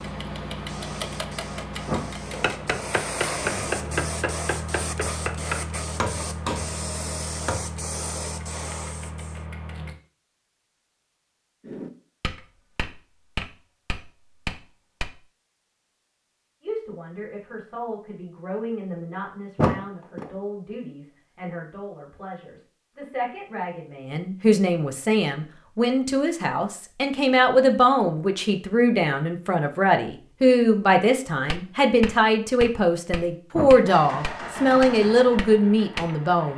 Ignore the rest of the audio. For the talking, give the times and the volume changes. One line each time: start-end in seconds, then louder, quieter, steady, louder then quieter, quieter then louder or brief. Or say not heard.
16.6-36.5 louder.